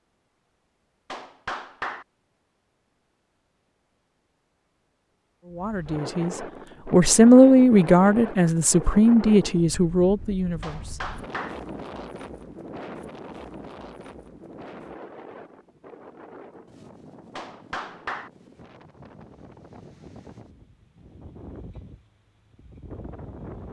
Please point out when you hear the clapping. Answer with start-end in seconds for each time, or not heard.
1.1-2.0, 10.6-11.6, 17.4-18.3.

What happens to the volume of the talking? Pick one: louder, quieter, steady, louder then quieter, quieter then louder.
louder then quieter.